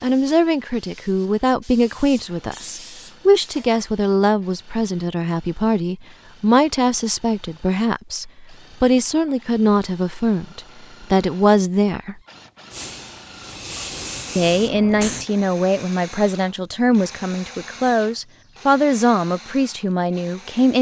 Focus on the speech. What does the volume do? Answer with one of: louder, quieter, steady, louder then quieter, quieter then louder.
steady.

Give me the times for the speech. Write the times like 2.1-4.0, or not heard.
0.0-12.2, 14.3-20.7.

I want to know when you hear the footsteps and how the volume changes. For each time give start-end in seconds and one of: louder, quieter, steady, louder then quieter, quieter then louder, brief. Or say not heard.
not heard.